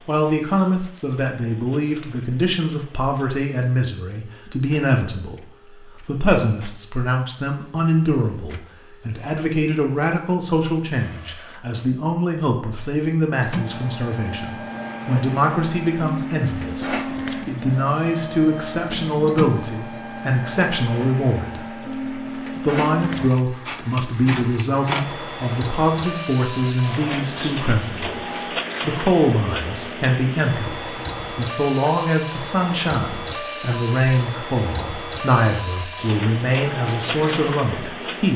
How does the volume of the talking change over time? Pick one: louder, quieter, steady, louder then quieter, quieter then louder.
steady.